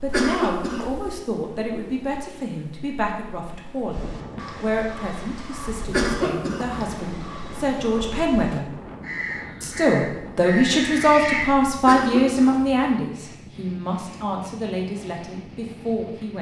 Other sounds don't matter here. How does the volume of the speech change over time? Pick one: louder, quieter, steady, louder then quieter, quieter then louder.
louder then quieter.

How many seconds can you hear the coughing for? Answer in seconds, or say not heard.
3 s.